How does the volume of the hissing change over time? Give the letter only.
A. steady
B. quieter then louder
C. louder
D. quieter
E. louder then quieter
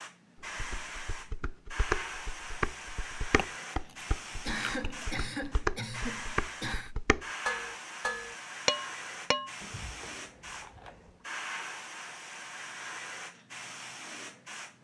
A.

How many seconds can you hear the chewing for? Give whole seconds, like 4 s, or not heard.
3 s.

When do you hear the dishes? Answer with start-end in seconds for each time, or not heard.
0.4-9.6.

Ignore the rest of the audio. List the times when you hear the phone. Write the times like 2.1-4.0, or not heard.
not heard.